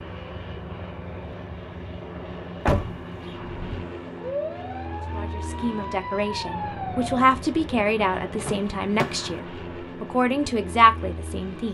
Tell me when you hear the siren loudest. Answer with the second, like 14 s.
7 s.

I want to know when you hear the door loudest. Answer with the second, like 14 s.
3 s.